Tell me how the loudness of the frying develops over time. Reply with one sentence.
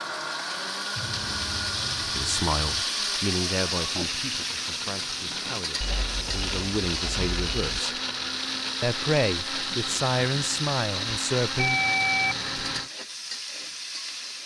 The loudness of the frying goes down.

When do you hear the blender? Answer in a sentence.
The blender can be heard from 0.0 to 12.9 s.